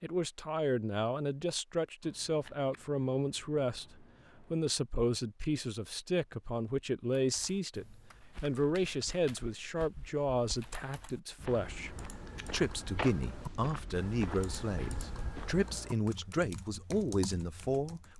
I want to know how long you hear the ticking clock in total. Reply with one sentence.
You can't hear the ticking clock here.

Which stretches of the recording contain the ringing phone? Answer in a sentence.
The ringing phone can't be heard in this clip.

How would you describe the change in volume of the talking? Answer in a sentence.
The volume of the talking stays about the same.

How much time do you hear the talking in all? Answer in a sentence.
You can hear the talking for 18 seconds altogether.